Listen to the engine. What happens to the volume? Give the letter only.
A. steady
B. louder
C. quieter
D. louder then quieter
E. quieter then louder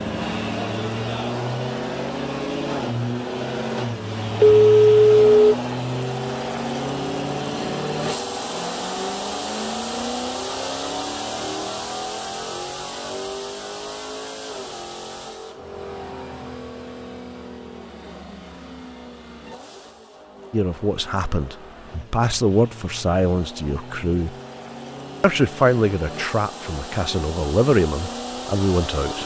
E.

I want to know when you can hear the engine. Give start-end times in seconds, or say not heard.
0.0-29.2.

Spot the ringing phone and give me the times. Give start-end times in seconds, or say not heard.
4.4-5.5.